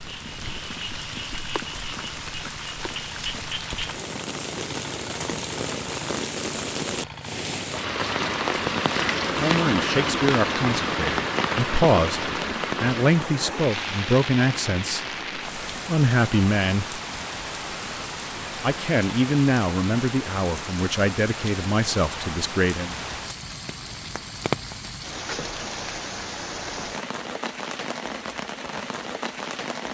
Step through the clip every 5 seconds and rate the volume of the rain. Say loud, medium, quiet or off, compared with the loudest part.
medium, loud, loud, medium, medium, medium.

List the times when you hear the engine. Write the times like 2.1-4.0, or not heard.
0.0-7.6.